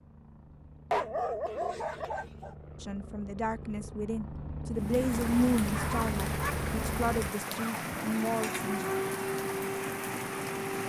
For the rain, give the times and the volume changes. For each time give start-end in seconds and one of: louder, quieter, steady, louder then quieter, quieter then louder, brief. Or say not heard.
4.8-10.8 steady.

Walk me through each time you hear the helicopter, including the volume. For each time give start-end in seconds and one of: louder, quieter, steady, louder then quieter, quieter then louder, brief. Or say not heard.
0.0-7.3 louder.